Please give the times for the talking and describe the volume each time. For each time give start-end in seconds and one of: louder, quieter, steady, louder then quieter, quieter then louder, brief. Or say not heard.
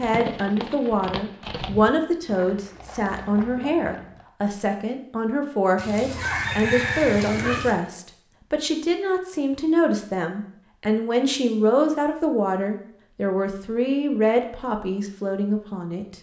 0.0-16.1 steady.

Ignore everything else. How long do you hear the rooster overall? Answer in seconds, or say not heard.
2 s.